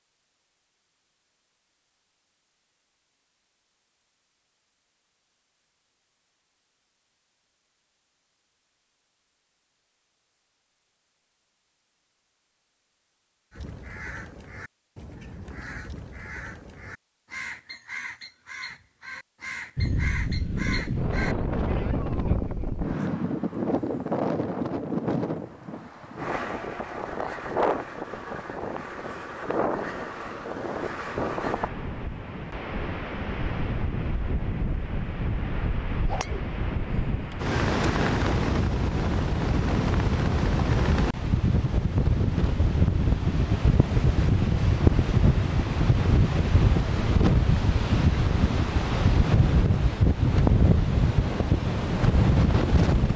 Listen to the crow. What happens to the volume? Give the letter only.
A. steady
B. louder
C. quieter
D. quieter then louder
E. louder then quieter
B.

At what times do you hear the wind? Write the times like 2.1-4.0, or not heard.
19.8-53.1.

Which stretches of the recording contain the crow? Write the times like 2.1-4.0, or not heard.
13.5-22.9.